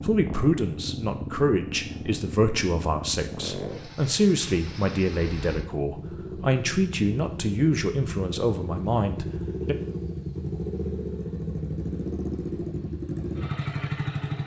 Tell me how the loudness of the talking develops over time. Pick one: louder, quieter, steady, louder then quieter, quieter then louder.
steady.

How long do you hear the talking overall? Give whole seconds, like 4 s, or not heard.
10 s.